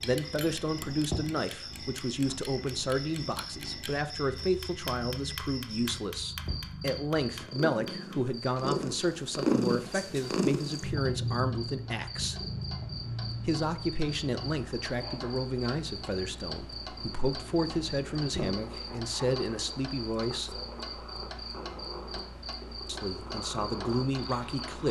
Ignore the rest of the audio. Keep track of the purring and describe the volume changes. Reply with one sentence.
The loudness of the purring goes up, then down.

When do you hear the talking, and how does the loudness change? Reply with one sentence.
The talking can be heard from 0.0 to 12.3 s, at a steady volume; from 13.4 to 20.5 s, at a steady volume; and briefly from 22.9 to 24.8 s.